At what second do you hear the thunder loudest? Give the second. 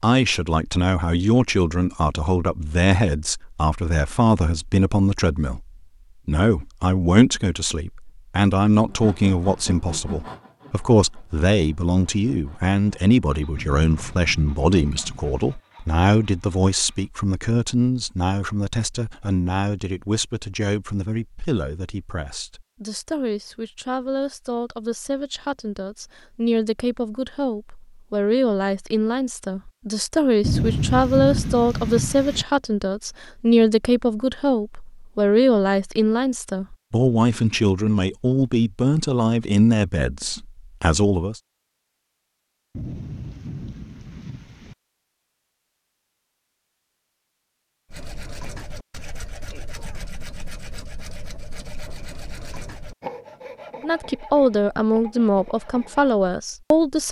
31 s.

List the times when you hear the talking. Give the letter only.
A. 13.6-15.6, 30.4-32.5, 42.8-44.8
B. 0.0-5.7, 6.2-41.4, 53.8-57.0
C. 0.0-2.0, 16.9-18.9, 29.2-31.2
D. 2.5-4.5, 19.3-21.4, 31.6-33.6
B.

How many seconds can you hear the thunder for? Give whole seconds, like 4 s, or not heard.
6 s.